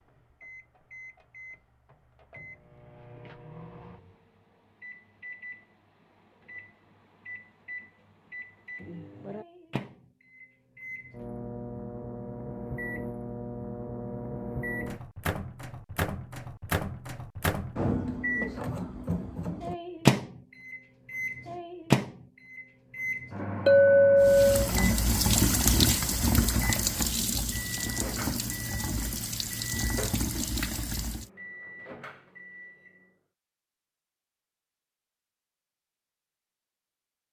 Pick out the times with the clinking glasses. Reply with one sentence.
You can hear the clinking glasses from 23.6 to 24.7 s.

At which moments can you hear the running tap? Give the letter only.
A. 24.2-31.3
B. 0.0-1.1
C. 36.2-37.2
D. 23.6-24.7
A.